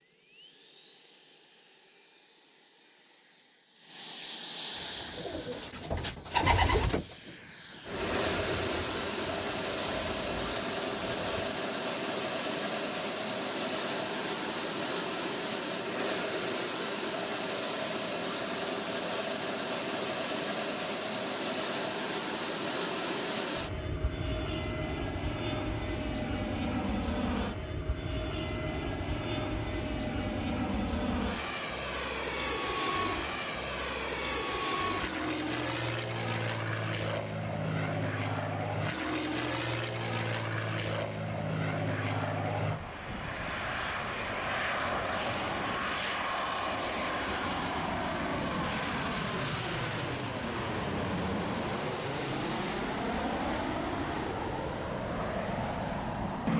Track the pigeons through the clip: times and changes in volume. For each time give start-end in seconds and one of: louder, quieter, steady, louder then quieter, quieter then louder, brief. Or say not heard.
4.7-11.6 louder then quieter.